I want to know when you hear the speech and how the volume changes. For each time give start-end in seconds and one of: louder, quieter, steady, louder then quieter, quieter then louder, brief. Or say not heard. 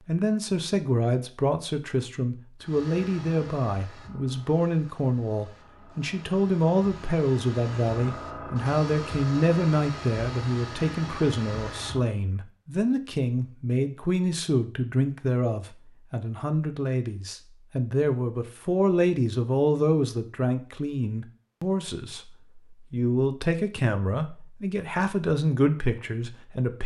0.1-26.8 steady.